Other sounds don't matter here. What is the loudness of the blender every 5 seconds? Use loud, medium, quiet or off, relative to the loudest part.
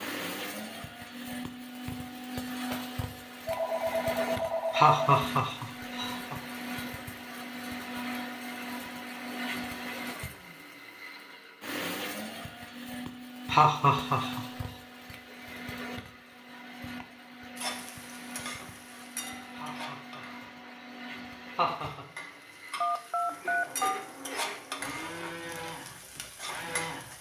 loud, loud, loud, medium, medium, loud.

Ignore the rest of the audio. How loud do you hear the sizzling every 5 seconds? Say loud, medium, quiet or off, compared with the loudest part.
off, off, off, loud, loud, loud.